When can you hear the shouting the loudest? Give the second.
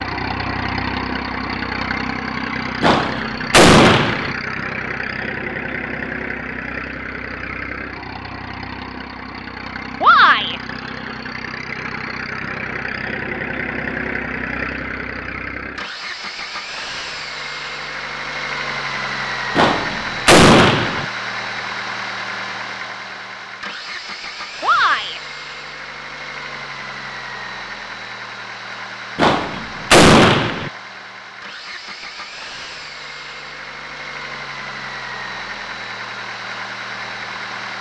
10 s.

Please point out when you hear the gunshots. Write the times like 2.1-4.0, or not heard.
2.8-4.3, 19.6-21.1, 29.1-30.7.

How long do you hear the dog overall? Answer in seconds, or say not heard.
not heard.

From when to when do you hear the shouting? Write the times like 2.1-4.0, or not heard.
10.0-10.6, 24.6-25.2.